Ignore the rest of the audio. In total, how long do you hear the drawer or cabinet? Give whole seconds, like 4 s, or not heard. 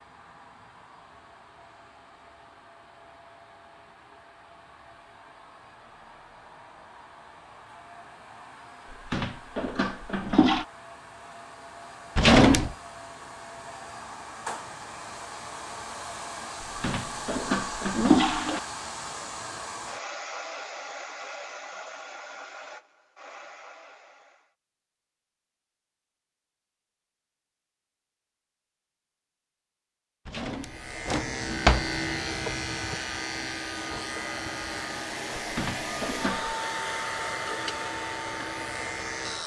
2 s.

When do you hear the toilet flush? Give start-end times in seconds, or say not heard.
9.1-10.7, 16.8-18.6, 35.4-36.5.